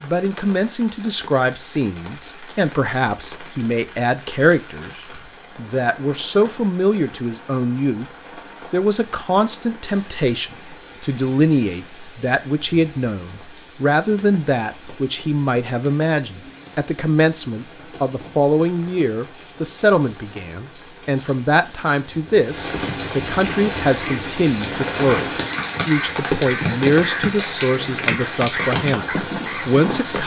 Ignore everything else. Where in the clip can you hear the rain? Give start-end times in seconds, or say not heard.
0.0-30.2.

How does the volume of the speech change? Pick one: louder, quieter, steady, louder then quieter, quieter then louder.
steady.